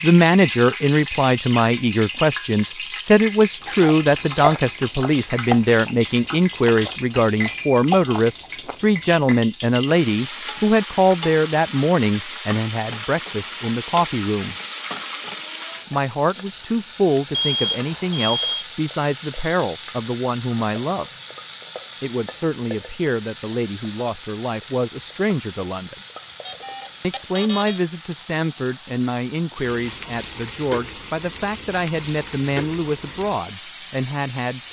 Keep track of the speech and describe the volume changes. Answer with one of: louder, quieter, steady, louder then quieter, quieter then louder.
quieter.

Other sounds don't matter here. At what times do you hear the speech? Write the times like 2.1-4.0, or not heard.
0.0-14.6, 15.9-21.1, 22.0-25.9, 27.0-34.6.